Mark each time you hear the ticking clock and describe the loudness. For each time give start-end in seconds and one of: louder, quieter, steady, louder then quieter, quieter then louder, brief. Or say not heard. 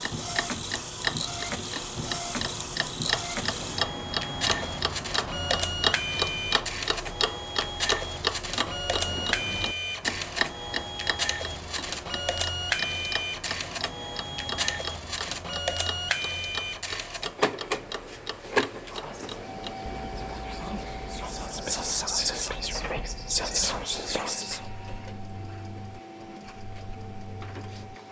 0.0-28.0 quieter.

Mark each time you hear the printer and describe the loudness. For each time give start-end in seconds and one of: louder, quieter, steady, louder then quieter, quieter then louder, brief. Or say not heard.
0.0-28.0 quieter.